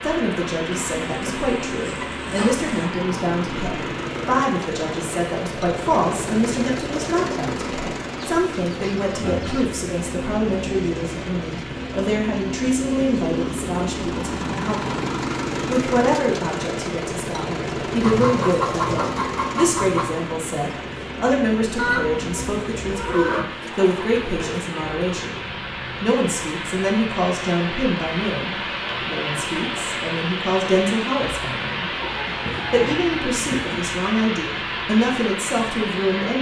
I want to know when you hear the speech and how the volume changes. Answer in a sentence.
The speech can be heard from 0.0 to 36.3 s, at a steady volume.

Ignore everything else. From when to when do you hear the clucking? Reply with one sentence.
The clucking can be heard from 0.7 to 2.9 s, from 8.3 to 9.7 s, from 18.0 to 20.2 s, from 21.8 to 23.4 s and from 31.9 to 34.0 s.